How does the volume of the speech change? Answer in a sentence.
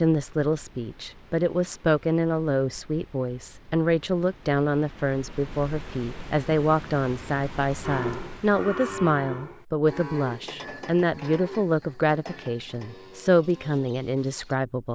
The loudness of the speech stays about the same.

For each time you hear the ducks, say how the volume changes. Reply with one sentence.
The ducks can't be heard in this clip.